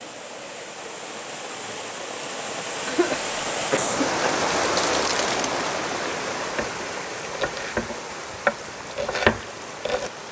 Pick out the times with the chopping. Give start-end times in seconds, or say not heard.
6.4-10.1.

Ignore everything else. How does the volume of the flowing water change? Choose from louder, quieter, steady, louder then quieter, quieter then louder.
louder then quieter.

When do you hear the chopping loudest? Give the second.
9 s.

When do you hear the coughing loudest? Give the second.
3 s.